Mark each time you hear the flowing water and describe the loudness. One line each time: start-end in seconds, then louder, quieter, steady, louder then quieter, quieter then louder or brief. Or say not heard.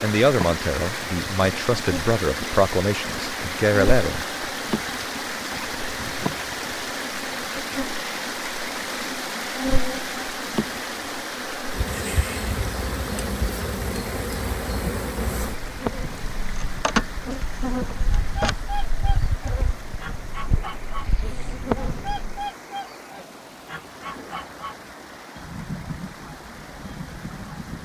0.0-27.8 quieter.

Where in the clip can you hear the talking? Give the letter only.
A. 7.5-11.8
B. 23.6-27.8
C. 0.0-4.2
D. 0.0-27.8
C.